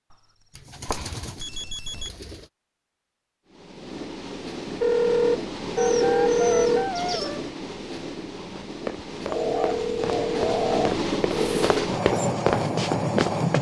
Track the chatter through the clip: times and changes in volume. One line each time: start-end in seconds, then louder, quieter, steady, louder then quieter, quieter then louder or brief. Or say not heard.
not heard.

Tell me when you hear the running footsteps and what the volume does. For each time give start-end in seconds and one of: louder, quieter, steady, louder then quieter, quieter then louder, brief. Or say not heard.
8.7-13.5 louder.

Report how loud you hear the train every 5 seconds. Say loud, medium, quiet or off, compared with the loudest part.
medium, medium, loud.